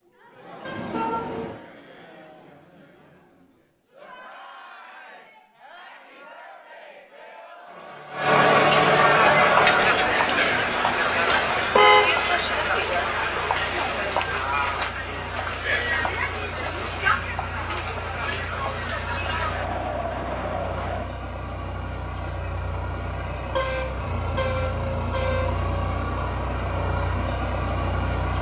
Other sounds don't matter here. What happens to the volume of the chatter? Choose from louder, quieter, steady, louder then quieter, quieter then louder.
louder then quieter.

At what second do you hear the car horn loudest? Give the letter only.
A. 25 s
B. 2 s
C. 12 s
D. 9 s
C.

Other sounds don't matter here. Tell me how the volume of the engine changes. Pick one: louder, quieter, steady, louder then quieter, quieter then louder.
louder.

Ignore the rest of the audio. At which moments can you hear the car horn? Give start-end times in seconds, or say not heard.
0.7-1.6, 11.8-12.3, 23.4-25.5.